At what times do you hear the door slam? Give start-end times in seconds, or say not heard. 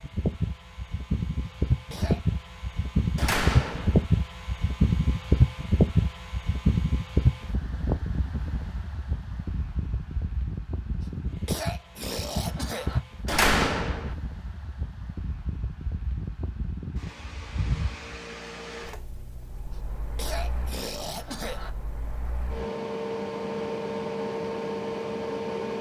3.1-4.0, 13.2-14.2.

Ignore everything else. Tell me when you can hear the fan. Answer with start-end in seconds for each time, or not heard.
0.0-25.7.